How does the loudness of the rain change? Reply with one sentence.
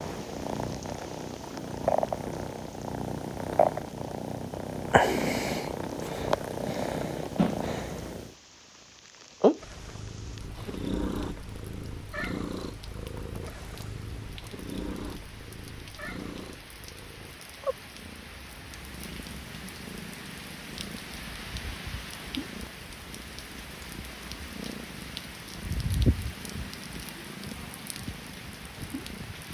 The loudness of the rain goes up.